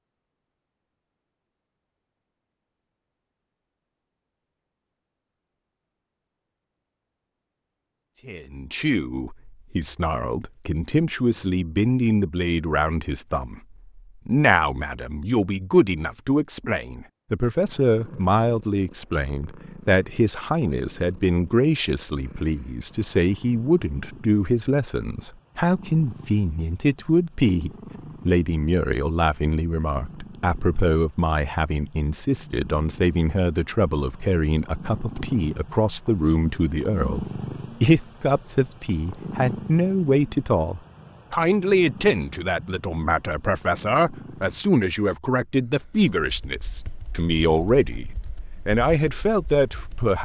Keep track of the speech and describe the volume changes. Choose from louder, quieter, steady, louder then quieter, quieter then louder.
steady.